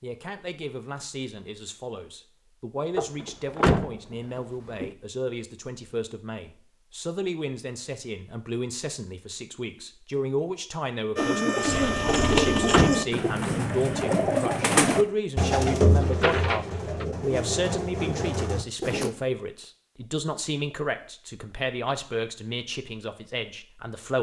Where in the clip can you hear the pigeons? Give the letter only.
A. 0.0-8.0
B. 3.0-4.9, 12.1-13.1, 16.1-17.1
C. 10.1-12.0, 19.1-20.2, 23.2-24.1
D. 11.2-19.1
D.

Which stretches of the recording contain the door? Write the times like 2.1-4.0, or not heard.
3.0-4.9, 12.1-13.1, 16.1-17.1.